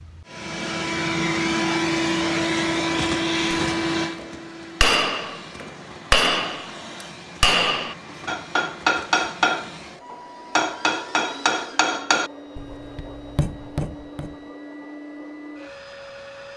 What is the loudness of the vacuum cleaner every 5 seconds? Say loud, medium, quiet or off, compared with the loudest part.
loud, quiet, quiet, quiet.